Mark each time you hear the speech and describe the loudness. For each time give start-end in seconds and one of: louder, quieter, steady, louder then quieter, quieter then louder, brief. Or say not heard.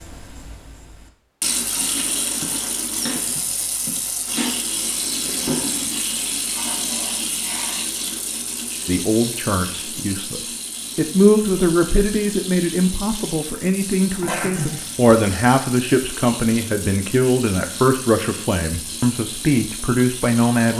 8.8-20.7 steady.